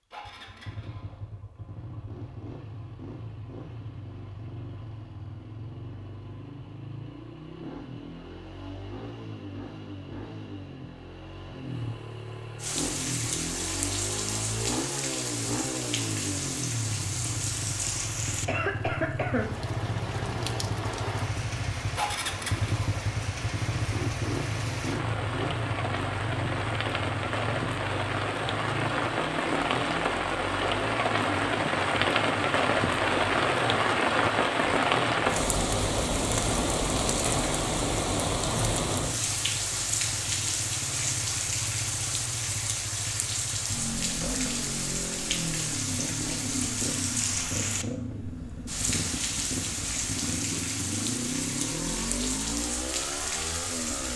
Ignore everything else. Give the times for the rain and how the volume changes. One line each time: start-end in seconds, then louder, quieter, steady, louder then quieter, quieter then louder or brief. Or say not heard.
12.6-54.1 louder then quieter.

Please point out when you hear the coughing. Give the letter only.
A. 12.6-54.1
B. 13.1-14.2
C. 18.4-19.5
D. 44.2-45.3
C.